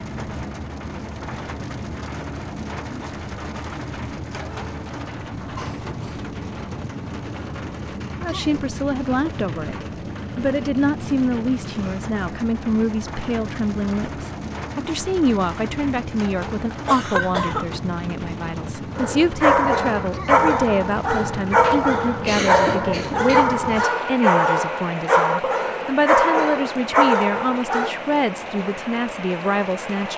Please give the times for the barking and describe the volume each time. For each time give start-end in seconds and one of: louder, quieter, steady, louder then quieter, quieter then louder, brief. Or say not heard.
18.9-27.9 steady.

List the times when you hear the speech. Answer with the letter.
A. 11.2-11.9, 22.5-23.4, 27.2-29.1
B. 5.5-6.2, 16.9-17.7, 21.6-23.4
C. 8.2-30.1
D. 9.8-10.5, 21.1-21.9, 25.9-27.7
C.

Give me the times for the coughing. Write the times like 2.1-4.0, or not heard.
5.5-6.2, 16.9-17.7, 21.6-23.4.